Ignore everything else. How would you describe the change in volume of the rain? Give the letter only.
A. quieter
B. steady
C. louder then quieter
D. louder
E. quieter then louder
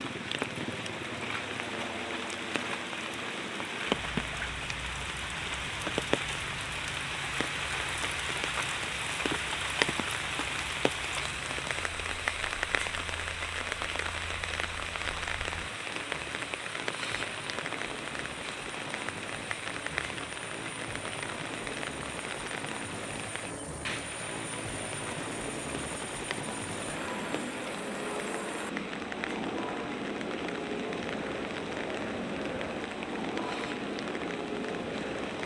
A.